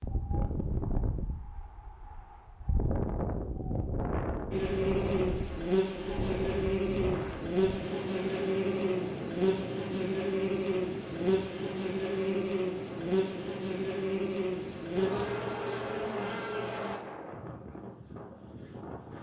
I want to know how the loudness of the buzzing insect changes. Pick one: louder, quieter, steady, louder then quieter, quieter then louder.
steady.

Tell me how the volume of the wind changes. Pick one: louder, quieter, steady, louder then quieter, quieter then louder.
quieter.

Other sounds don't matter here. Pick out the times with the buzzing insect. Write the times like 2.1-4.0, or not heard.
4.5-17.0.